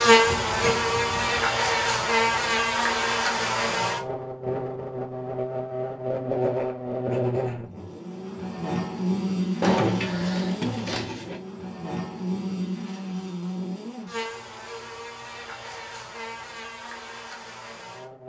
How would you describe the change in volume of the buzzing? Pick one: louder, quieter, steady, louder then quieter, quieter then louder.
quieter.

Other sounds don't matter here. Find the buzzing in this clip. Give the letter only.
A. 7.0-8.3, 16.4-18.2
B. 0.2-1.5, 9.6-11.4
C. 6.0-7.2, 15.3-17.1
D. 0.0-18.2
D.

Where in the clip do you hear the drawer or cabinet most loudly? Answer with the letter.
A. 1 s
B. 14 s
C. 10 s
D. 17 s
C.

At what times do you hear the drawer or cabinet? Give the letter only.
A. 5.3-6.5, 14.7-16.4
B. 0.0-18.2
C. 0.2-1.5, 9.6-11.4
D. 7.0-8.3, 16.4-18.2
C.